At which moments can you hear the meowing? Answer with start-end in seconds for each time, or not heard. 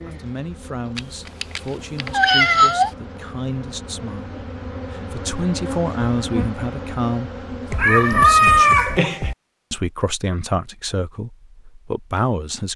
0.9-2.9, 7.7-9.3.